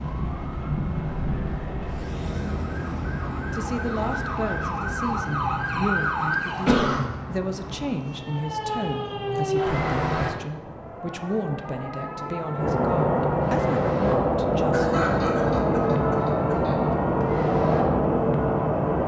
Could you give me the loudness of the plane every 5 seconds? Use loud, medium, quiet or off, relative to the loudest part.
quiet, quiet, loud, loud.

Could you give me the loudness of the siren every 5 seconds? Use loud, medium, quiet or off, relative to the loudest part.
loud, loud, medium, medium.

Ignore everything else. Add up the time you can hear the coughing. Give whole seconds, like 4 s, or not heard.
3 s.